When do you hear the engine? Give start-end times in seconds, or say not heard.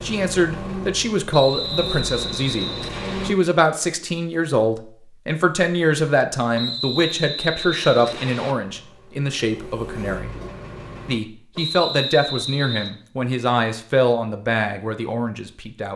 0.0-3.4, 8.6-11.2.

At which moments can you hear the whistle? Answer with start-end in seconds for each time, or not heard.
1.3-3.3, 6.5-8.6, 11.6-12.9.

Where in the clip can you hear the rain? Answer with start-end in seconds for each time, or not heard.
not heard.